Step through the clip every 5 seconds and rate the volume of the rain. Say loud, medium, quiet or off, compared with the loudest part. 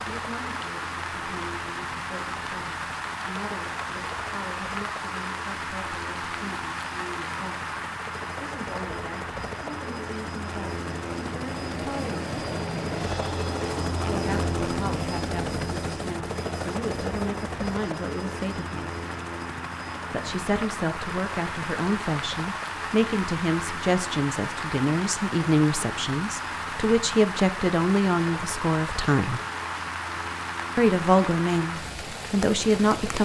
loud, loud, medium, medium, loud, loud, loud.